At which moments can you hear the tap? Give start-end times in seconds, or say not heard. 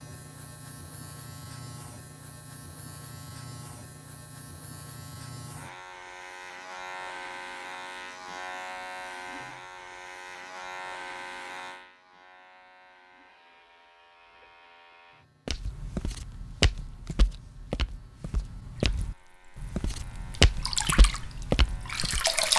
18.9-22.5.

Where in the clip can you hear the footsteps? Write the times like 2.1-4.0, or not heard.
15.4-22.2.